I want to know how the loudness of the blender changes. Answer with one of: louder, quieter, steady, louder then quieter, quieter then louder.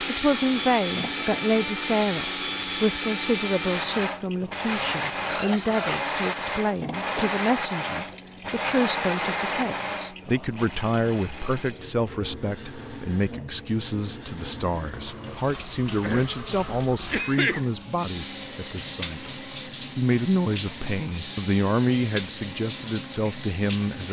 quieter.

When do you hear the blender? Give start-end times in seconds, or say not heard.
0.0-23.9.